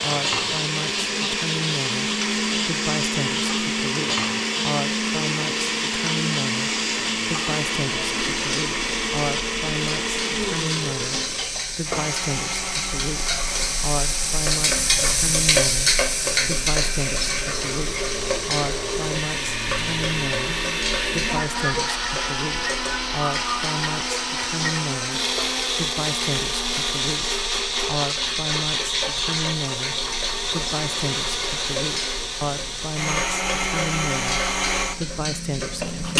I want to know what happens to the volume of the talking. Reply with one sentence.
The volume of the talking stays about the same.